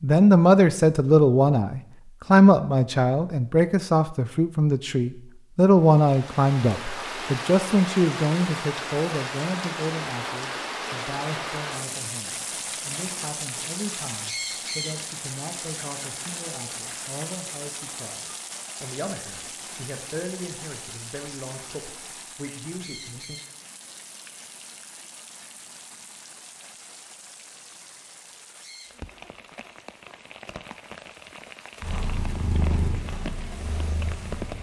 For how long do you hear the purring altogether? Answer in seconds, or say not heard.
3 s.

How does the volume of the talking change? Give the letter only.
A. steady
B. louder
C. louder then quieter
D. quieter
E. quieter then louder
D.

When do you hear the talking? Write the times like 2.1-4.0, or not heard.
0.0-23.4.